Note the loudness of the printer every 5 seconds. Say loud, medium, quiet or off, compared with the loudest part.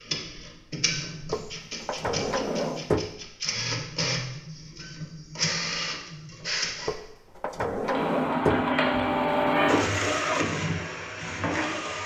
medium, loud, loud.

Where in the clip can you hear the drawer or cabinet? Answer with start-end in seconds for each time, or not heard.
1.3-3.1, 6.8-8.7.